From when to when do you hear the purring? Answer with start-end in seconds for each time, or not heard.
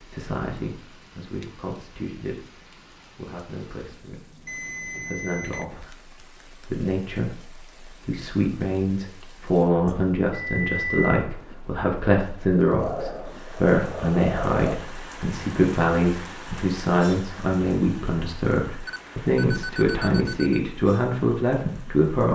12.8-14.8.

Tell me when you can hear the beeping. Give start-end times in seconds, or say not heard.
4.5-5.7, 9.8-11.2, 18.9-20.6.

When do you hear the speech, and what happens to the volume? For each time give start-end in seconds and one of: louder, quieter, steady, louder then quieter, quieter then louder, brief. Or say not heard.
0.0-22.3 louder.